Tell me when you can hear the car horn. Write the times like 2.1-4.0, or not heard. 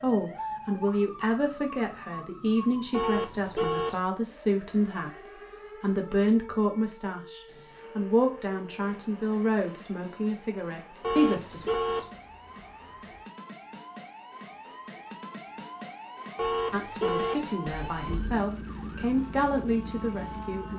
2.9-4.0, 11.0-12.1, 16.4-17.4.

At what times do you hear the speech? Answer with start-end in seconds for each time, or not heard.
0.0-11.7, 16.7-20.7.